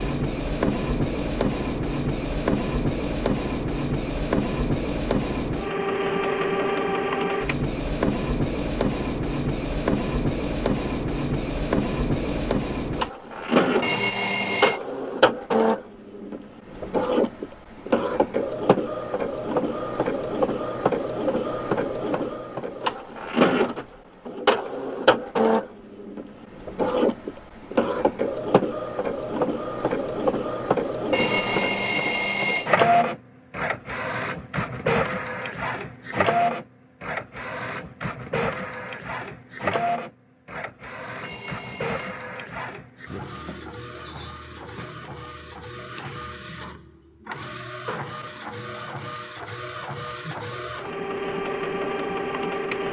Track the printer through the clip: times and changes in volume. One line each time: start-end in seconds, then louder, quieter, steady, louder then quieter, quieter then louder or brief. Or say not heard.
0.0-52.8 quieter.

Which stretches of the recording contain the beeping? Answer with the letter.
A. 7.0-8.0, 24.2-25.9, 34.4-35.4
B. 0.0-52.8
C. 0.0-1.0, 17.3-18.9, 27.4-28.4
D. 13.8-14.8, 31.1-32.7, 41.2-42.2
D.